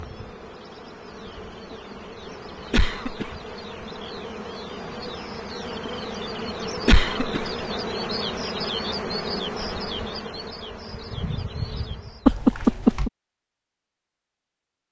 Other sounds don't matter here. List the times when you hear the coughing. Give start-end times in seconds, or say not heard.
2.7-3.4, 6.8-7.5, 12.2-13.1.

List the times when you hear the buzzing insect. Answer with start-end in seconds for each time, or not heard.
0.0-12.4.